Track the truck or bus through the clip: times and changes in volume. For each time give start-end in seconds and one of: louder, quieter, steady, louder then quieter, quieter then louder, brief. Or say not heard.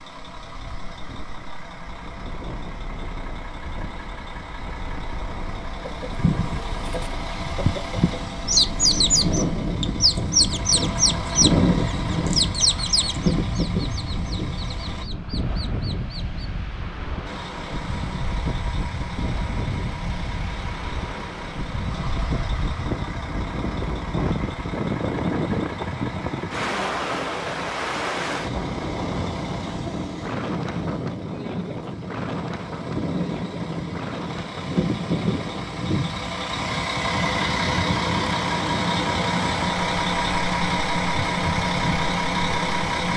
0.0-15.1 louder
17.2-43.1 louder.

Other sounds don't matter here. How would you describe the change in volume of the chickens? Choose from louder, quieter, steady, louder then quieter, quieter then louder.
louder then quieter.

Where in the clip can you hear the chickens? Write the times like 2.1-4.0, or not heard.
5.8-16.5.